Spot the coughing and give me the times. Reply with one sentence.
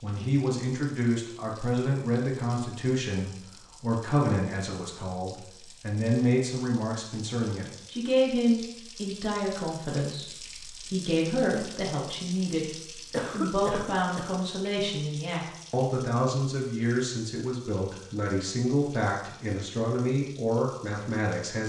You can hear the coughing from 13.1 to 14.3 s.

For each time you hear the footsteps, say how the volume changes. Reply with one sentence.
The footsteps can't be heard in this clip.